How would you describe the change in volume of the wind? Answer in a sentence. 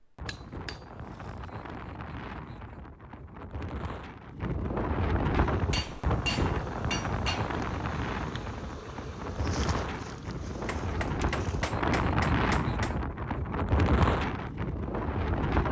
The loudness of the wind goes up.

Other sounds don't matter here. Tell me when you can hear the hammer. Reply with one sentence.
You can hear the hammer from 0.2 to 0.8 s, from 5.7 to 7.5 s and from 10.7 to 13.0 s.